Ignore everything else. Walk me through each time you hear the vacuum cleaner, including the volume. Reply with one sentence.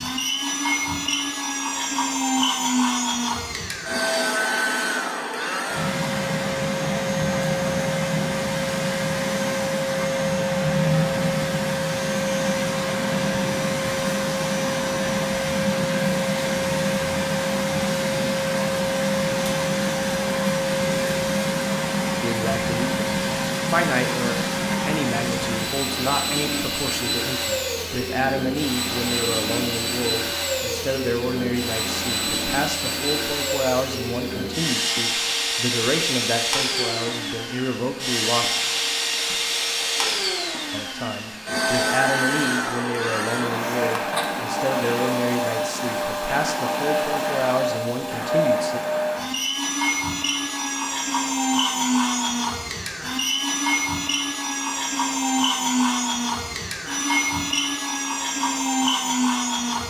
You can hear the vacuum cleaner from 0.0 to 59.8 s, at a steady volume.